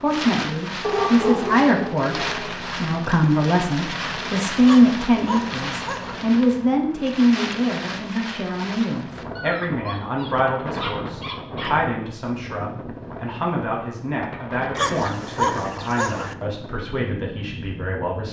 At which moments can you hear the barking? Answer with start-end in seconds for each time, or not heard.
0.8-2.5, 4.6-6.2, 9.3-11.8, 14.8-16.4.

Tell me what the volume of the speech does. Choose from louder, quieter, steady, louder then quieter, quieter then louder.
quieter.